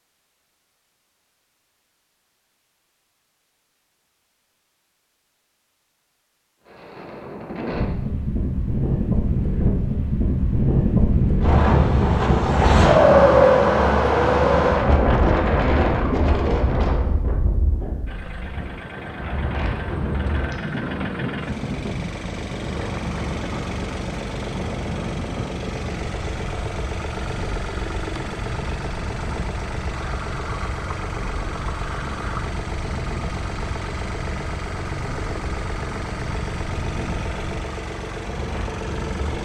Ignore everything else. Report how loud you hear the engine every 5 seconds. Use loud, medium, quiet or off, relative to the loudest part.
off, off, off, medium, loud, loud, loud, loud.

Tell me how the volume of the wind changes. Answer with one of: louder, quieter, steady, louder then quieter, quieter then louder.
quieter.